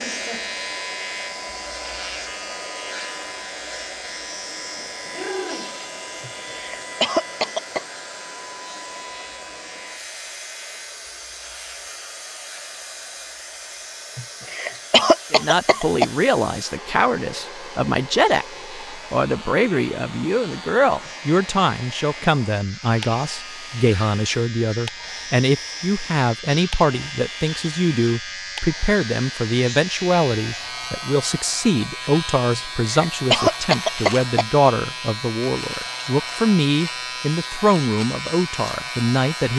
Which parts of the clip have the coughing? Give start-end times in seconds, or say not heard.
6.2-7.8, 14.2-16.1, 32.5-34.5.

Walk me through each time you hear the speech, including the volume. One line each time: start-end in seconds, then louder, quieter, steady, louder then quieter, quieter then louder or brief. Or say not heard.
15.3-39.5 steady.